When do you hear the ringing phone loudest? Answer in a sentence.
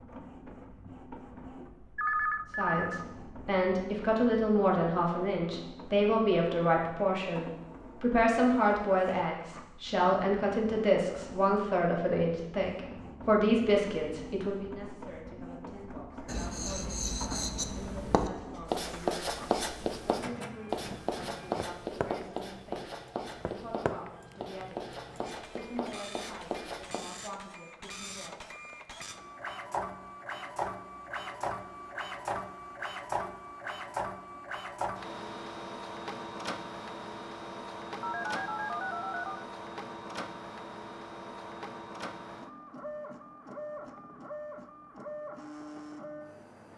The volume of the ringing phone peaks at 2 seconds.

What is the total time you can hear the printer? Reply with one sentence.
The printer can be heard for 47 seconds in total.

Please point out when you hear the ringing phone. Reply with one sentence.
The ringing phone can be heard from 1.9 to 3.0 s and from 38.0 to 39.5 s.